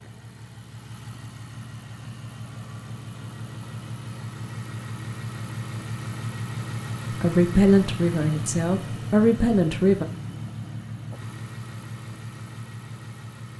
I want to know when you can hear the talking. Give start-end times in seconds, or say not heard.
7.1-10.1.